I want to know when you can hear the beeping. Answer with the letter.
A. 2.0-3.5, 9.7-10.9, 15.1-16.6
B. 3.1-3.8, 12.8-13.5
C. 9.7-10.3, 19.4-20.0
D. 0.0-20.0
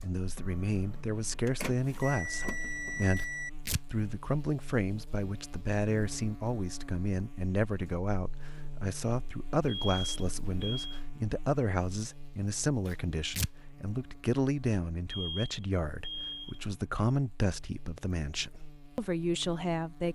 A.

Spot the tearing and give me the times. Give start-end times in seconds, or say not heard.
3.1-3.8, 12.8-13.5.